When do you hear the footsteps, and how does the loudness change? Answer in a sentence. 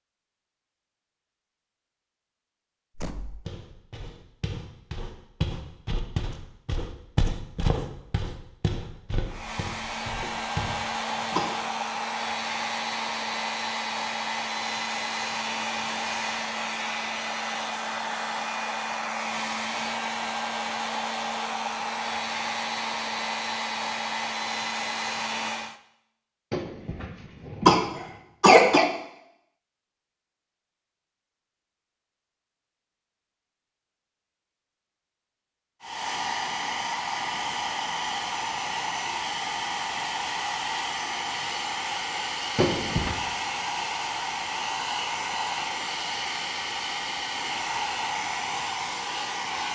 You can hear the footsteps from 3.5 to 10.8 s, getting louder then quieter.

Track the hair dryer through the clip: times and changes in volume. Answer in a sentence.
You can hear the hair dryer from 9.2 to 25.8 s, at a steady volume; and from 35.8 to 49.6 s, at a steady volume.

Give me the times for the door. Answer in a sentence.
You can hear the door from 3.0 to 3.5 s.